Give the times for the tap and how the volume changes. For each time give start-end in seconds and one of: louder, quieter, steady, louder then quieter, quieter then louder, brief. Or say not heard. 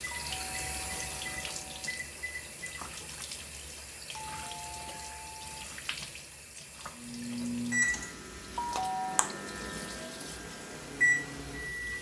0.0-11.9 quieter.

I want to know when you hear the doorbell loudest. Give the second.
9 s.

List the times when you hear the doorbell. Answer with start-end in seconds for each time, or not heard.
0.1-1.8, 4.1-5.7, 8.6-9.3.